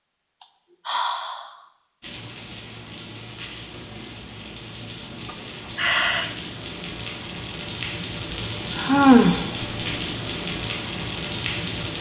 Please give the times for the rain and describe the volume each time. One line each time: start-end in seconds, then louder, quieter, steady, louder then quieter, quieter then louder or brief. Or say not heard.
2.0-11.9 louder.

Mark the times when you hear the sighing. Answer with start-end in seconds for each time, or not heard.
0.4-1.6, 5.2-6.3, 8.3-9.7.